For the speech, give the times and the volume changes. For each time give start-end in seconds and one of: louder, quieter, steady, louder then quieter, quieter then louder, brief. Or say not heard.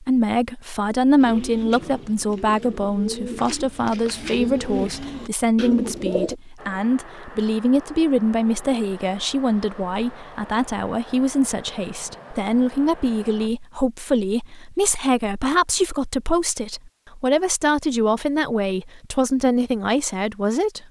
0.0-20.8 steady.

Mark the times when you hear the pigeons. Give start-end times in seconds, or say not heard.
1.2-6.3.